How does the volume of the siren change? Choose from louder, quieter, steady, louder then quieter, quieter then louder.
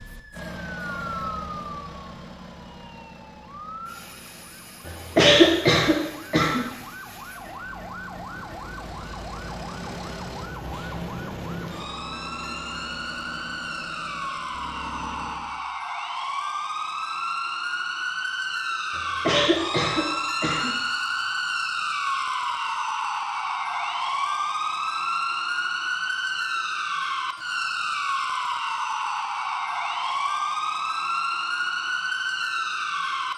louder.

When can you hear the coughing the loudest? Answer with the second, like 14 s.
5 s.